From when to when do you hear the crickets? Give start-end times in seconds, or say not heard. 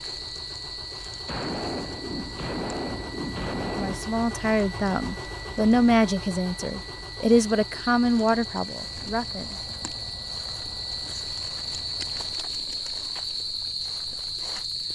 0.0-14.9.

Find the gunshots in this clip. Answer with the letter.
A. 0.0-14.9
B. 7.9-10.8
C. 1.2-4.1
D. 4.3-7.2
C.